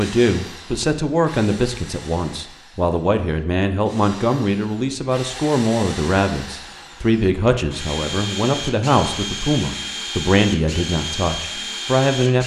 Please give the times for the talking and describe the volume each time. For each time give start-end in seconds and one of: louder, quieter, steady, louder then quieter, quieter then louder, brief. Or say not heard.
0.0-12.4 steady.